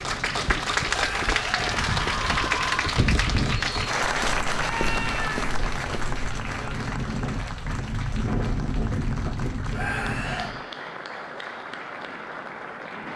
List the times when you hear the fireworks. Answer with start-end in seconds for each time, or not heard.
not heard.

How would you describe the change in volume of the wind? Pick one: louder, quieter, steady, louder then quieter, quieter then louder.
louder.